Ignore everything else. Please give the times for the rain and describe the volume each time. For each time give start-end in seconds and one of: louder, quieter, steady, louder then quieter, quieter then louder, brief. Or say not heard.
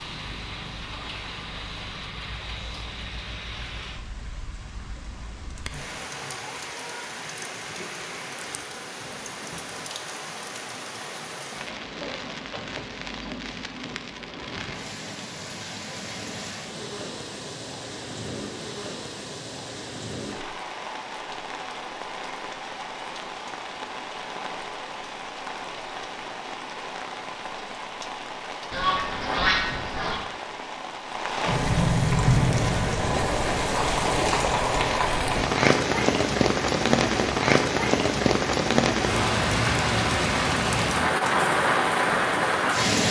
0.0-43.0 louder.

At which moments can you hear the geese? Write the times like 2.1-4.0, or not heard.
28.7-30.2.